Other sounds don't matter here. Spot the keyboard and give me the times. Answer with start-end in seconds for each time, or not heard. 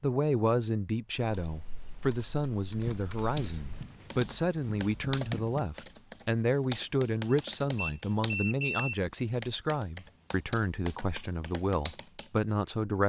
1.2-12.4.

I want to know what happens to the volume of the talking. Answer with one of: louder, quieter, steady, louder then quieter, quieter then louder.
steady.